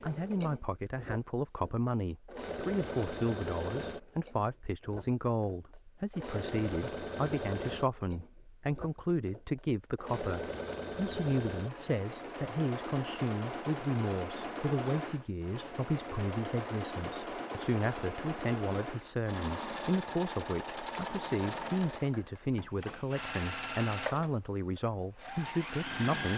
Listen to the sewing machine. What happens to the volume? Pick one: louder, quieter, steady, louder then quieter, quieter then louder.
steady.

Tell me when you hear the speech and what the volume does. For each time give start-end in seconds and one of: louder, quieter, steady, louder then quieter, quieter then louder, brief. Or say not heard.
0.0-26.3 steady.